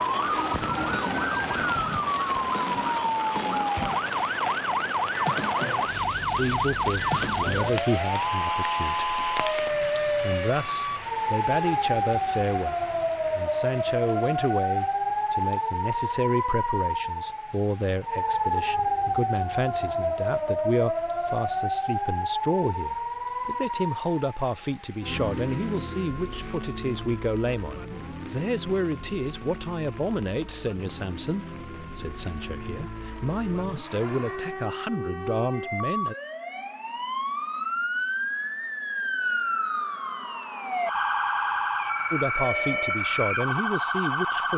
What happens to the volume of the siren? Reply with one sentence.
The loudness of the siren goes down, then up.